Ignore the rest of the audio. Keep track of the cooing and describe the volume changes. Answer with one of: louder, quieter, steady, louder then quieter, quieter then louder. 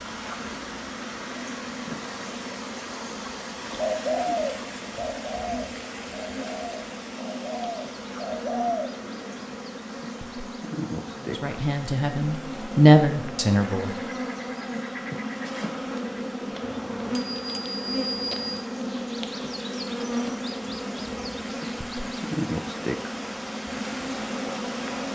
quieter then louder.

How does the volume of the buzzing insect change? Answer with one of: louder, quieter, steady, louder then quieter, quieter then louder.
louder.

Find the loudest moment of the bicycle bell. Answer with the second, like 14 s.
18 s.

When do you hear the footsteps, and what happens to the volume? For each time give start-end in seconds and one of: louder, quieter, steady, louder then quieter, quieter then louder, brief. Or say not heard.
not heard.